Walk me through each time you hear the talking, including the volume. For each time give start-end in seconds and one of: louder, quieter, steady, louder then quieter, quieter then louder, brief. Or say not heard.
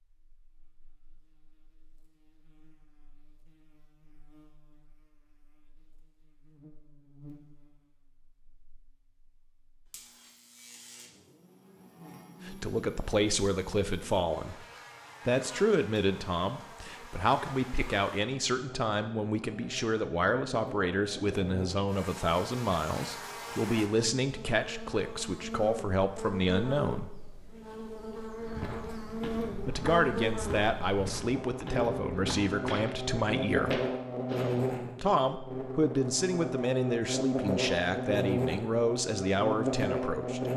12.4-14.6 brief
15.2-27.1 steady
29.6-33.8 steady
35.0-40.5 steady.